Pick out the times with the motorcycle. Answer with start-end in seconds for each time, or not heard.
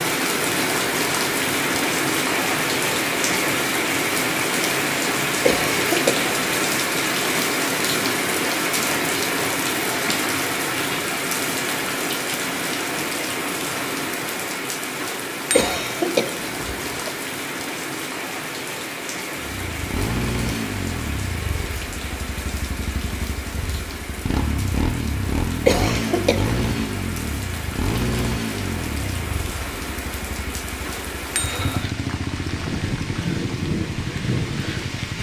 19.4-35.1.